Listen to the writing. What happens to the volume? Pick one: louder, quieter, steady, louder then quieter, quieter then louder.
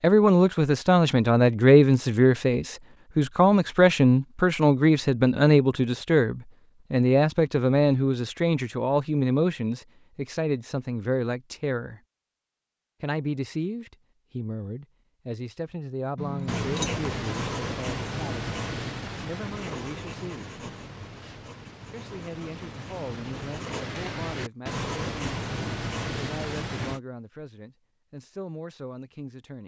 quieter then louder.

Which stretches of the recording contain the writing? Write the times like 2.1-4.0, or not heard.
16.4-27.0.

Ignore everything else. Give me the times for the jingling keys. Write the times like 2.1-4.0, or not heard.
16.1-17.1.